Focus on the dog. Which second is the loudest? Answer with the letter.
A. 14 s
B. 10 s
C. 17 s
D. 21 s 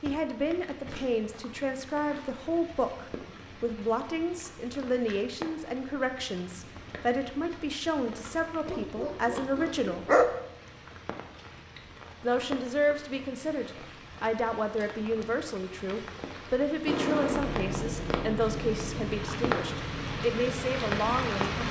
B.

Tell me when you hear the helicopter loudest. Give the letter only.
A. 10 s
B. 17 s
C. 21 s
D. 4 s
B.